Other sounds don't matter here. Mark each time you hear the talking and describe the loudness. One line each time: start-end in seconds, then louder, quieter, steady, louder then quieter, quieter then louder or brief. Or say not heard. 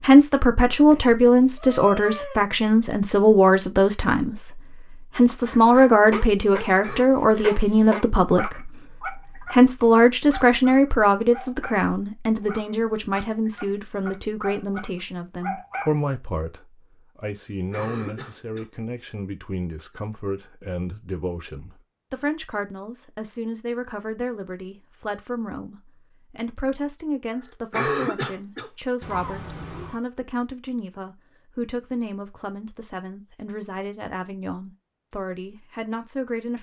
0.0-36.5 quieter.